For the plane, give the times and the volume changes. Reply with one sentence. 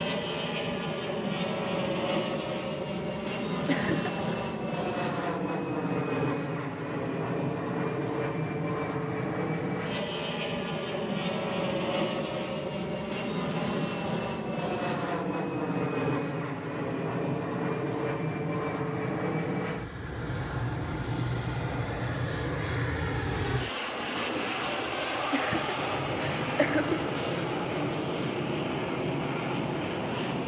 The plane can be heard from 0.0 to 30.4 s, at a steady volume.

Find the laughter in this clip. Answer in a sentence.
The laughter can be heard from 3.6 to 4.3 s and from 25.3 to 27.1 s.